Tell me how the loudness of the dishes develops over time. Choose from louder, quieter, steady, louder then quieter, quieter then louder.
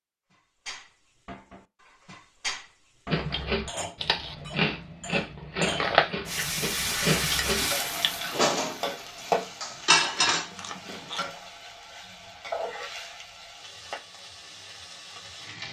louder.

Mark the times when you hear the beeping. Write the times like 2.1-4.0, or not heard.
not heard.